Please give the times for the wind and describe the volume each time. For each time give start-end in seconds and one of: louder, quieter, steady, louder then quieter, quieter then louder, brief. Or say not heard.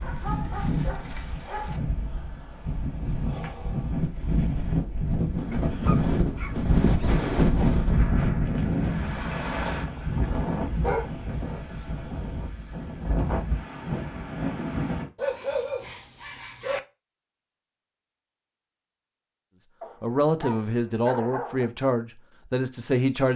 0.0-15.1 louder then quieter.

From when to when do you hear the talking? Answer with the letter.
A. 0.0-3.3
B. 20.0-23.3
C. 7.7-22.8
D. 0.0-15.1
B.